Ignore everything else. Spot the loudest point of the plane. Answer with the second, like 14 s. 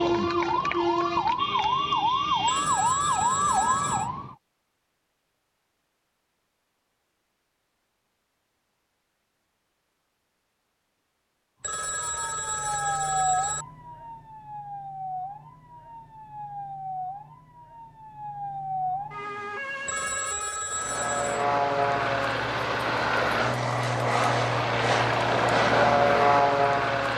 26 s.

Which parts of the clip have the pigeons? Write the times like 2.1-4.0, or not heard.
not heard.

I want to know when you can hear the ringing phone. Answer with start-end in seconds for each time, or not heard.
2.5-4.1, 11.6-13.7, 19.9-21.4.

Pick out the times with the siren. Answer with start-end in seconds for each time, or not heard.
0.0-4.3, 11.7-20.8.